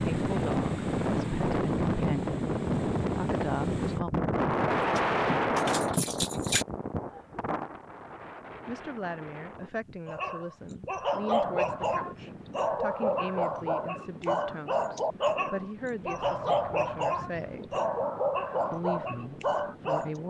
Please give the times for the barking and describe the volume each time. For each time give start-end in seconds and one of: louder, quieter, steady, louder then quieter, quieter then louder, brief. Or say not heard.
10.1-20.2 steady.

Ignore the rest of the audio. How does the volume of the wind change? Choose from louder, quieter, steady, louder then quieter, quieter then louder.
quieter.